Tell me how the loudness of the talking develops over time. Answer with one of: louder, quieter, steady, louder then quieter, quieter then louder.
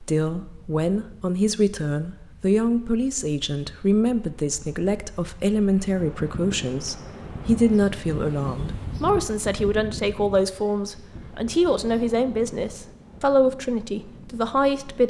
steady.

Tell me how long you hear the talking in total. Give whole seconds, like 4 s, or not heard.
15 s.